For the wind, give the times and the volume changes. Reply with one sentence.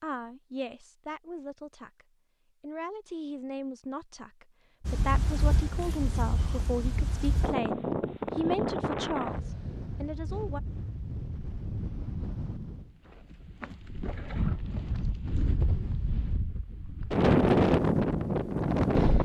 You can hear the wind from 4.8 to 19.1 s, getting quieter then louder.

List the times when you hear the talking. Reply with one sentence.
You can hear the talking from 0.0 to 10.6 s.